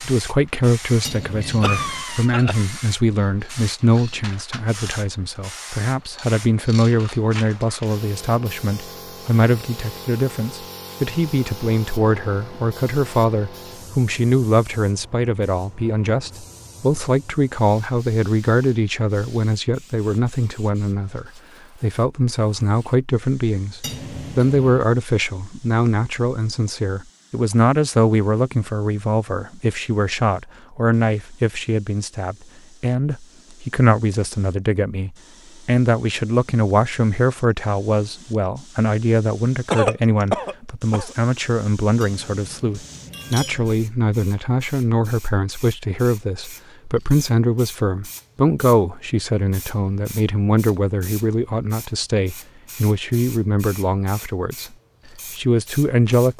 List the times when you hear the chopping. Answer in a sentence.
You can't hear the chopping here.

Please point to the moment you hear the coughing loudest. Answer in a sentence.
The volume of the coughing peaks at 40 seconds.